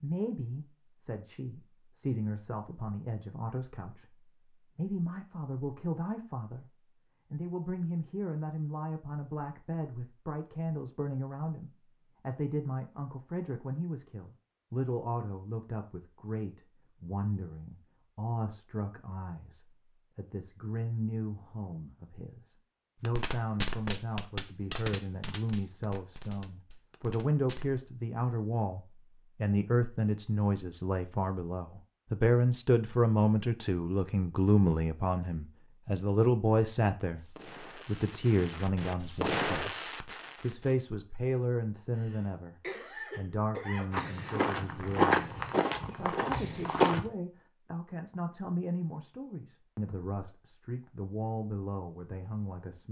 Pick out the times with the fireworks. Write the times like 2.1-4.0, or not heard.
23.1-27.8, 37.1-40.8.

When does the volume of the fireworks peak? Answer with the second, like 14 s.
39 s.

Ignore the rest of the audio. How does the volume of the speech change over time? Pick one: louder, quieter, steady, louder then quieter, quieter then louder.
louder then quieter.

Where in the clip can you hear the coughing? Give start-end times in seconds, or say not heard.
42.0-43.9.